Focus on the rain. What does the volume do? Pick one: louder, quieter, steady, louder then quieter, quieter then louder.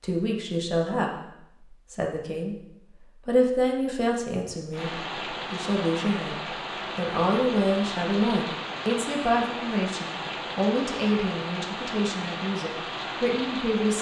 steady.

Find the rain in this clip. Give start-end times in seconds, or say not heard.
4.7-13.9.